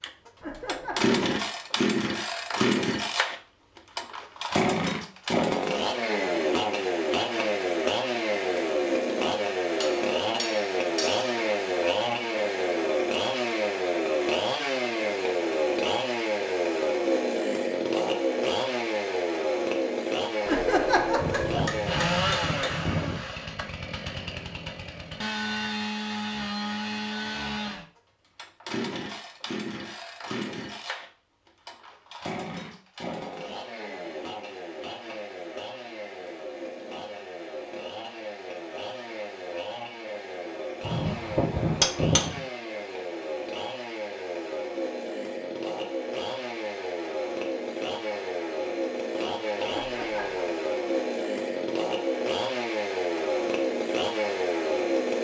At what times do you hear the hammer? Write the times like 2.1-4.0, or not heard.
9.8-11.3, 21.1-23.2, 40.8-42.4.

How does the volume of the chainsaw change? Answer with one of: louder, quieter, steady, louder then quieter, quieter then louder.
quieter then louder.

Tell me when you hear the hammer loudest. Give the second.
42 s.